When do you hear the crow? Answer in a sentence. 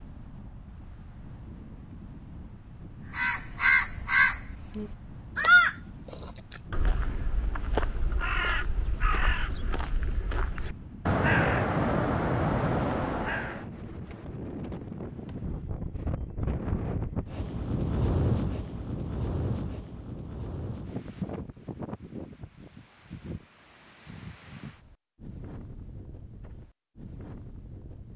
The crow can be heard from 3.1 to 13.7 s.